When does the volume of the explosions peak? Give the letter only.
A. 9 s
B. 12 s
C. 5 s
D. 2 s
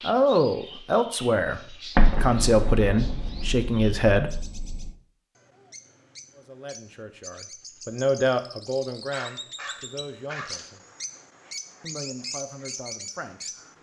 D.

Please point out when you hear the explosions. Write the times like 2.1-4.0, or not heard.
1.9-4.9.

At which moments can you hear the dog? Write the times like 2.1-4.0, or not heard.
9.1-10.7.